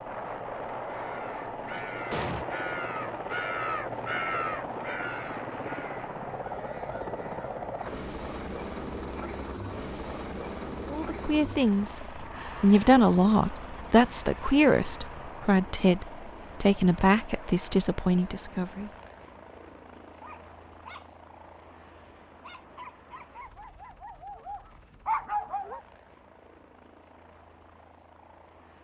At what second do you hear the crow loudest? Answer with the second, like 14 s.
4 s.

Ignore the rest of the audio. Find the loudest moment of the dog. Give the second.
25 s.